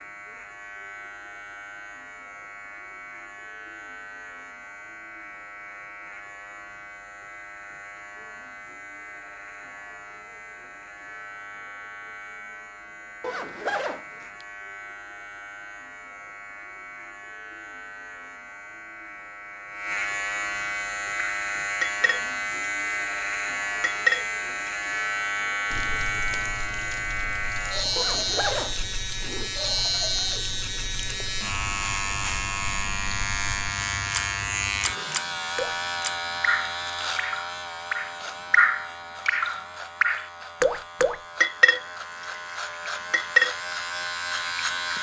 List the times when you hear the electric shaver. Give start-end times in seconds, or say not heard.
0.0-44.9.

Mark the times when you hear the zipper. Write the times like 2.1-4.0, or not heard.
13.2-14.4, 27.9-29.5.